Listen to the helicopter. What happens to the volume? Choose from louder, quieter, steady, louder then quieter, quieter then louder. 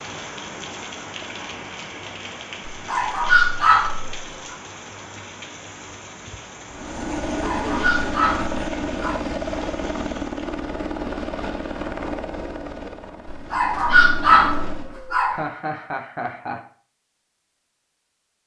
quieter.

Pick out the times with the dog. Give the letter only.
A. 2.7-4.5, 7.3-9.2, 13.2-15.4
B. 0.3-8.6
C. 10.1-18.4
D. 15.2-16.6
A.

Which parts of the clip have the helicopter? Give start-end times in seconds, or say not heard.
6.7-14.9.